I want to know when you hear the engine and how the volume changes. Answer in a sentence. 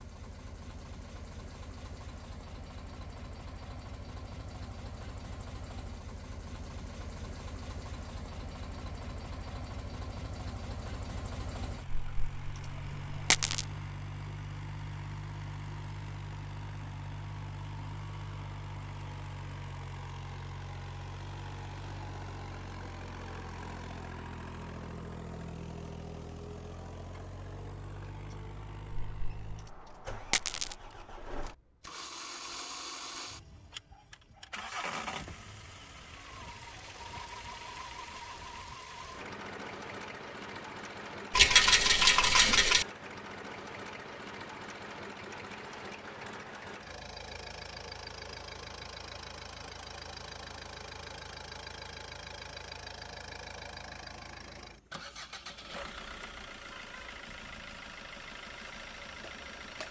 You can hear the engine from 0.0 to 59.8 s, at a steady volume.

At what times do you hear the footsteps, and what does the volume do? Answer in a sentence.
The footsteps can't be heard in this clip.